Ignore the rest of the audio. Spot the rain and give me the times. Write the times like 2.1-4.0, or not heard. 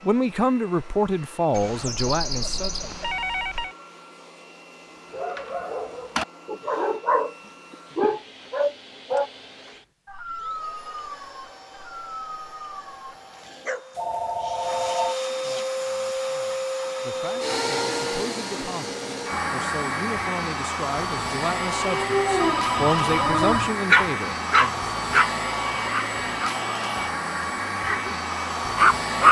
not heard.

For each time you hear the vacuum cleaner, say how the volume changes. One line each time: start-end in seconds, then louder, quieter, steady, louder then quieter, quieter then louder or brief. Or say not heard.
0.0-29.2 louder.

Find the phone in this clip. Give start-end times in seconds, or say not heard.
1.5-3.8, 13.9-15.2, 22.4-23.8.